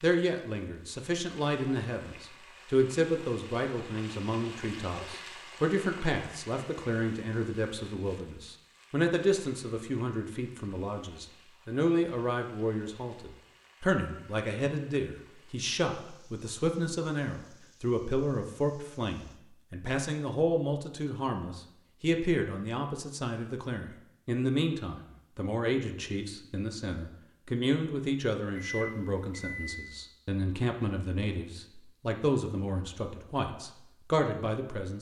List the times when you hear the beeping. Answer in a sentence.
The beeping can be heard from 28.5 to 29.9 s.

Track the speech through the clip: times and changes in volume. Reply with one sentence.
You can hear the speech from 0.0 to 34.9 s, at a steady volume.